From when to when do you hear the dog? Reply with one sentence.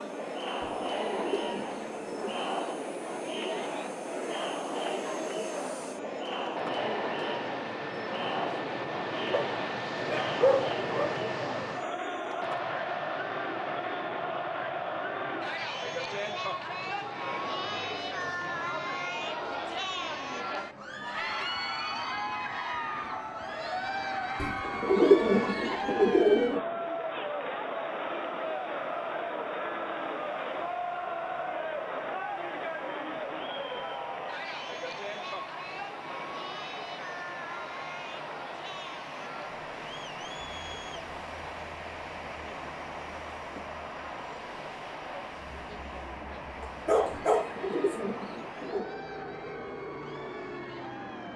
You can hear the dog from 9.3 to 11.2 s and from 46.6 to 48.0 s.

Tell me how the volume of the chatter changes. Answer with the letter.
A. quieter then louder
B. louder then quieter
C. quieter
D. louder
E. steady
C.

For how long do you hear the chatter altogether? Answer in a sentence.
The chatter can be heard for 51 seconds in total.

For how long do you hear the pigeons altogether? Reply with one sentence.
You can hear the pigeons for 6 seconds altogether.